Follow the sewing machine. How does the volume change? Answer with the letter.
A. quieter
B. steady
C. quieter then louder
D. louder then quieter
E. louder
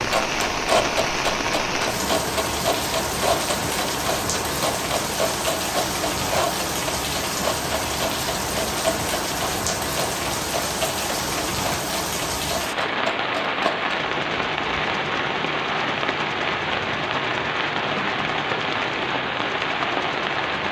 A.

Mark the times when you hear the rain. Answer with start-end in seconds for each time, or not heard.
0.0-20.6.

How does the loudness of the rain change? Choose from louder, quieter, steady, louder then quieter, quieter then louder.
steady.